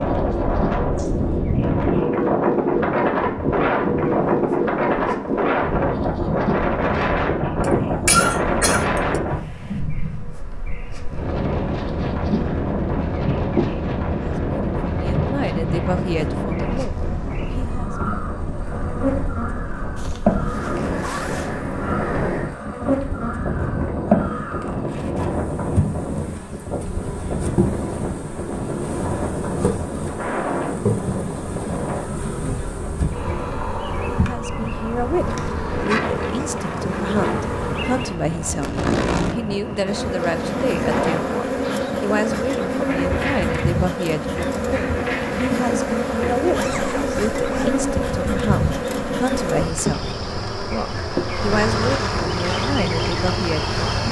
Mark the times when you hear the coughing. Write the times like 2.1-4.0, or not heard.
7.6-9.2.